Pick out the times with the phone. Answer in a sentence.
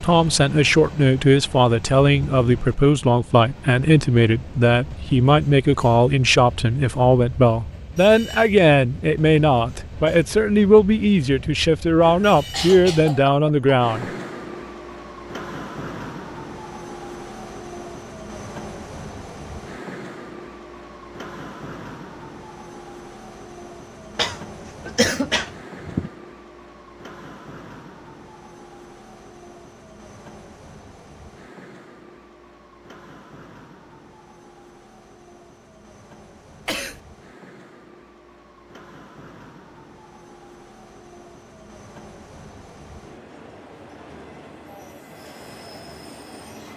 The phone can't be heard in this clip.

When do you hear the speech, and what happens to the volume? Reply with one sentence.
The speech can be heard from 0.0 to 14.1 s, at a steady volume.